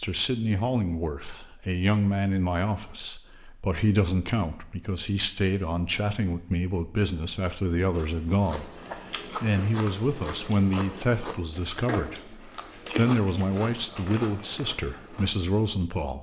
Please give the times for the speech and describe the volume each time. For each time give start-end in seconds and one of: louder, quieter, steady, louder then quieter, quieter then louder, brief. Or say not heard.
0.0-16.1 steady.